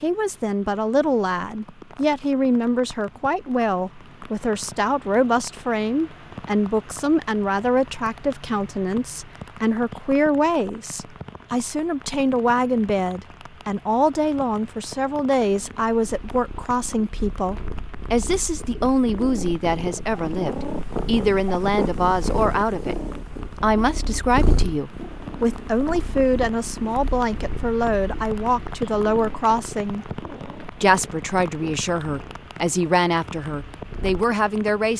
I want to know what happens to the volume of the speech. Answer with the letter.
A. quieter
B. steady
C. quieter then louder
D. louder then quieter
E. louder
B.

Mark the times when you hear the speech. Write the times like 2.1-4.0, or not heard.
0.0-22.9, 23.6-30.1, 30.8-34.9.